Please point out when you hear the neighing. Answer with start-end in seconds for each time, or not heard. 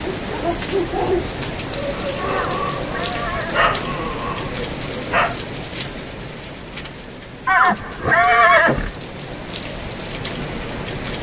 2.3-3.8, 7.5-8.9.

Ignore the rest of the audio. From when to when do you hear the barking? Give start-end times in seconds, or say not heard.
0.0-5.4.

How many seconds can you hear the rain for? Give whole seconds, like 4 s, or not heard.
11 s.